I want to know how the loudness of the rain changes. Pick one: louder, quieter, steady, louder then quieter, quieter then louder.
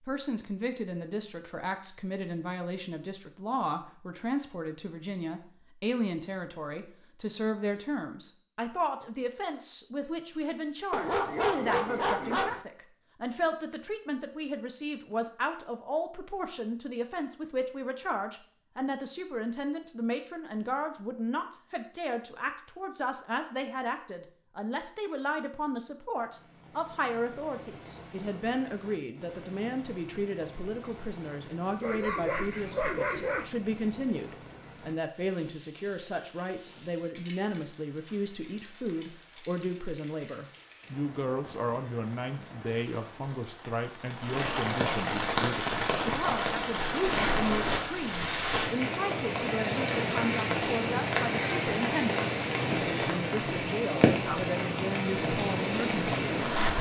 louder.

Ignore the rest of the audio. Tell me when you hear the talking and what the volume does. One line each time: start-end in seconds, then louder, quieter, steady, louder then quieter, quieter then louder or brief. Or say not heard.
0.0-56.4 steady.